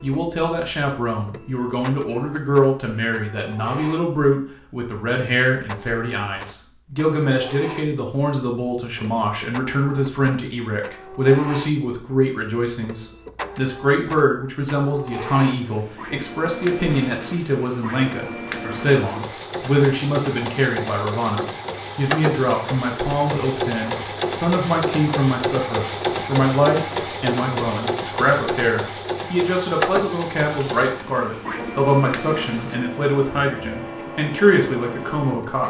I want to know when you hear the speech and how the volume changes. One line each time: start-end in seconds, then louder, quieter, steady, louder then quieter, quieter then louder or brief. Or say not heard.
0.0-35.6 steady.